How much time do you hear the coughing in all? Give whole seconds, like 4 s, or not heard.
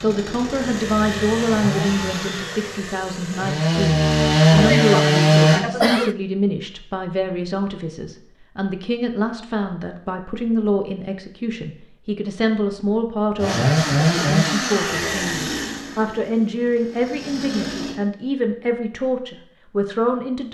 2 s.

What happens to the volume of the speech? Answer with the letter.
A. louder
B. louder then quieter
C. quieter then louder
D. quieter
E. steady
E.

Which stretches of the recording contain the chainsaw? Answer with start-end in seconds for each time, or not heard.
0.0-5.6, 13.3-17.9.